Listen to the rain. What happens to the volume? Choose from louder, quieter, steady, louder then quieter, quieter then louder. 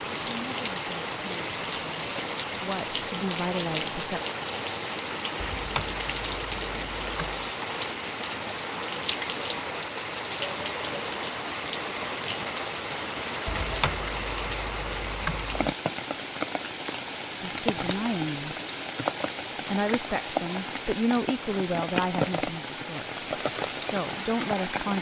steady.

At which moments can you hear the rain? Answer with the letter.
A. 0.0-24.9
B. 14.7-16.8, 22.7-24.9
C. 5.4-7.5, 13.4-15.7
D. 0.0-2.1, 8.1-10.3
A.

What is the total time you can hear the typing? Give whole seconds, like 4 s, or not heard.
4 s.